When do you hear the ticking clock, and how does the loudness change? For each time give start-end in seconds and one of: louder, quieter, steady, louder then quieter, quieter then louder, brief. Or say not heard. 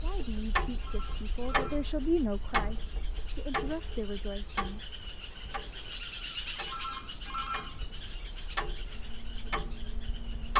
0.0-10.5 quieter then louder.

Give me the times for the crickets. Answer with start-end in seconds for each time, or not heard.
0.0-10.5.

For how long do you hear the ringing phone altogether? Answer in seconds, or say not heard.
3 s.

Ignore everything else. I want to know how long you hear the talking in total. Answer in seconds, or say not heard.
5 s.